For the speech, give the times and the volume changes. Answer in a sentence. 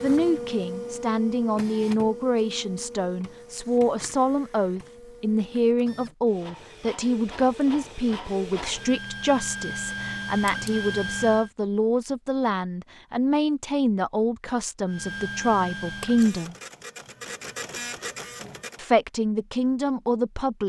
The speech can be heard from 0.0 to 16.6 s, at a steady volume; and briefly from 18.8 to 20.6 s.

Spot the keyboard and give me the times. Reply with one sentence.
The keyboard can't be heard in this clip.